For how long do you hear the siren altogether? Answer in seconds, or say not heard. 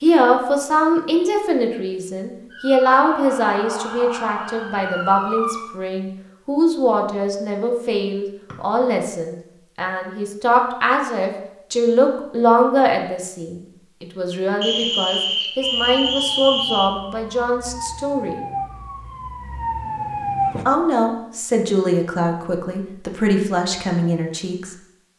8 s.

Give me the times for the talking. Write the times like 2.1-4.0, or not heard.
0.0-18.4, 20.6-24.8.